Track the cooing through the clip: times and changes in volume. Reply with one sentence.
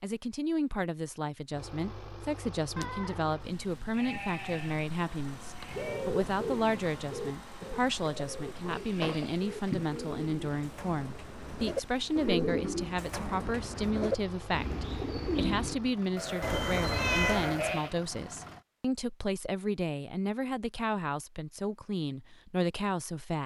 You can hear the cooing from 5.7 to 15.8 s, getting quieter then louder.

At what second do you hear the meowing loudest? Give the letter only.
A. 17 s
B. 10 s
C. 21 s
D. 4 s
A.